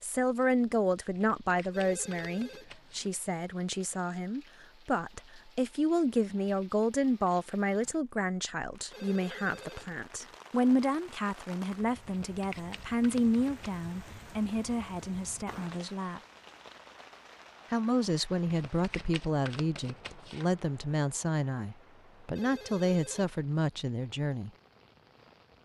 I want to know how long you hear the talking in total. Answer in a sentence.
The talking can be heard for 23 seconds in total.